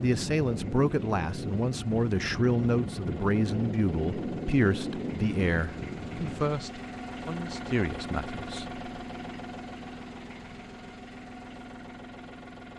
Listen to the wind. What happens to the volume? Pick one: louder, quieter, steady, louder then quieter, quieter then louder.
steady.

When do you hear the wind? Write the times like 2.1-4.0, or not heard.
0.0-6.6.